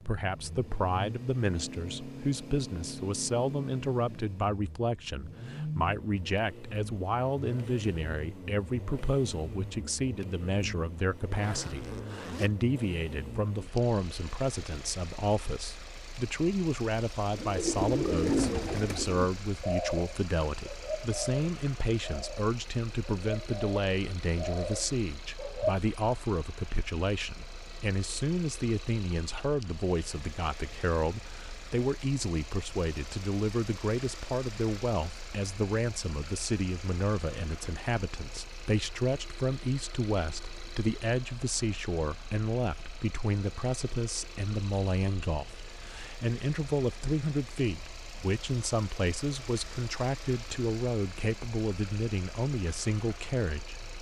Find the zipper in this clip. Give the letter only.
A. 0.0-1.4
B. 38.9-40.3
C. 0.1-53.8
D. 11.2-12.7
D.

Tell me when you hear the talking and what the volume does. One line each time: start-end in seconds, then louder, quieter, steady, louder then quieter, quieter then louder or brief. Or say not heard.
0.1-53.8 steady.